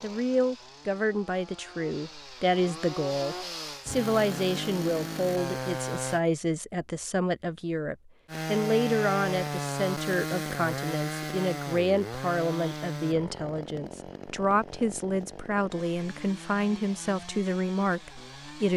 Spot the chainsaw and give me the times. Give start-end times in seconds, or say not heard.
0.0-6.2, 8.2-18.7.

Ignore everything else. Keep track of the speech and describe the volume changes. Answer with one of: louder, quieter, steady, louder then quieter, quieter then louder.
steady.